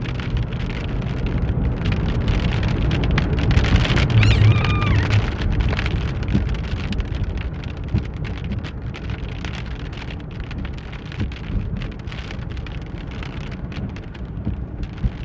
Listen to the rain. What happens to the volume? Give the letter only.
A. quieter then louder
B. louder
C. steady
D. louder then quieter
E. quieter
E.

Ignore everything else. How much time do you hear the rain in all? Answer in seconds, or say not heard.
15 s.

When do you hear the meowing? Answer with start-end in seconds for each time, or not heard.
4.0-5.2.